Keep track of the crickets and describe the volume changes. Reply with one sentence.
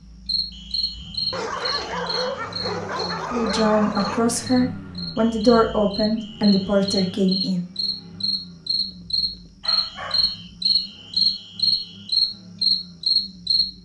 The volume of the crickets goes down, then up.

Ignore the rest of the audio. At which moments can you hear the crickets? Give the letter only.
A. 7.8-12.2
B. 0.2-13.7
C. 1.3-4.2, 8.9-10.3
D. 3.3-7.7
B.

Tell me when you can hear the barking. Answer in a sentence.
You can hear the barking from 1.3 to 4.2 s and from 8.9 to 10.3 s.